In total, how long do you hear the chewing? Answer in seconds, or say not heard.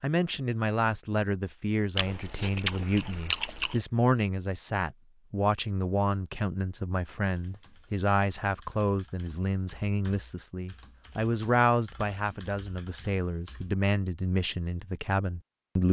2 s.